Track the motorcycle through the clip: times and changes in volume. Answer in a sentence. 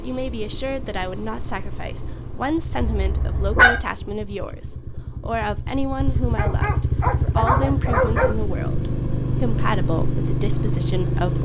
You can hear the motorcycle from 0.0 to 11.4 s, getting louder.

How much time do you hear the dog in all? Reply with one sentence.
You can hear the dog for 3 seconds altogether.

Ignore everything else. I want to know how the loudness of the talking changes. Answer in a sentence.
The volume of the talking stays about the same.